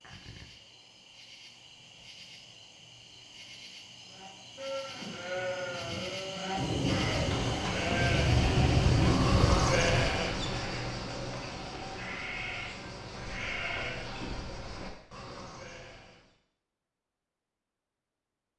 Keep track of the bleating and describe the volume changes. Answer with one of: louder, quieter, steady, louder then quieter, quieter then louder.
louder then quieter.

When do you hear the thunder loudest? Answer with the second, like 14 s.
9 s.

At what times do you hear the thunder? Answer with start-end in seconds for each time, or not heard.
6.5-10.2.